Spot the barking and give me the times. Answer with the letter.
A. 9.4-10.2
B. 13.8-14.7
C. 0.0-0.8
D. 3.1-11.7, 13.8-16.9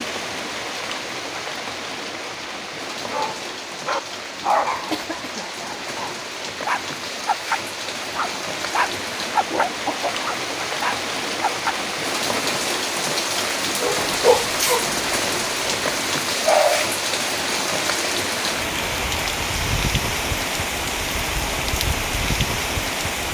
D.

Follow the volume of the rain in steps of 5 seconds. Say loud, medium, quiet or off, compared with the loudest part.
medium, medium, loud, loud, loud.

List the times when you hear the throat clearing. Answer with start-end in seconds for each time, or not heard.
9.4-10.2.